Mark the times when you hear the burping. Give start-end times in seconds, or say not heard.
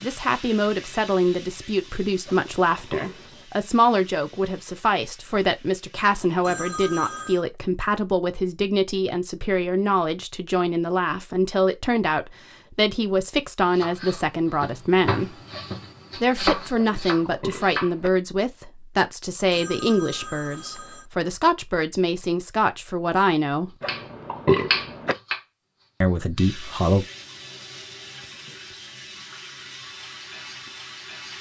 2.2-3.5, 16.8-18.1, 23.8-25.1.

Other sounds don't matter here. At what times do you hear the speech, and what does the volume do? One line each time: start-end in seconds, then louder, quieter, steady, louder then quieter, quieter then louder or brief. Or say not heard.
0.0-15.3 steady
16.1-23.7 steady
26.0-27.1 brief.